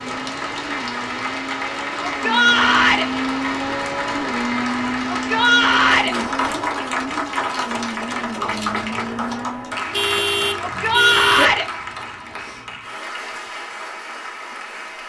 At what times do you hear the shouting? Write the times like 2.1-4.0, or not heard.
2.0-3.0, 5.1-6.2, 10.6-11.7.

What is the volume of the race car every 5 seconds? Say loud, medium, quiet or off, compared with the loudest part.
loud, loud, off.